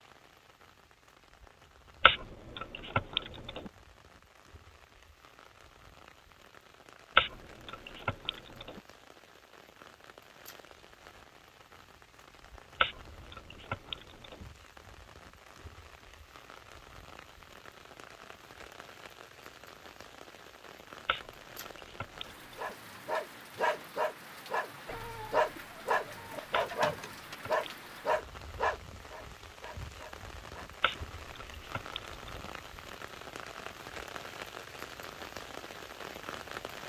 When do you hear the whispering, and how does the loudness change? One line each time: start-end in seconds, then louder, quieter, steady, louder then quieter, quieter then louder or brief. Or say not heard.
not heard.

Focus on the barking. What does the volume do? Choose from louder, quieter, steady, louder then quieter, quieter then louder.
quieter.